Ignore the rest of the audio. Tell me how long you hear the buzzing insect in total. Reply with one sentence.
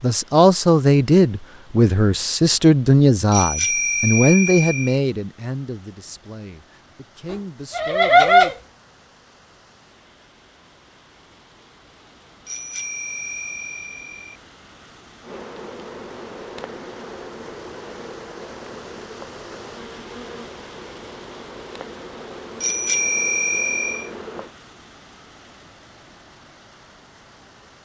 The buzzing insect can be heard for 9 seconds in total.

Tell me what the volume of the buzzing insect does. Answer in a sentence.
The loudness of the buzzing insect stays about the same.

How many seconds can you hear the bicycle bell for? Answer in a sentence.
You can hear the bicycle bell for 5 seconds altogether.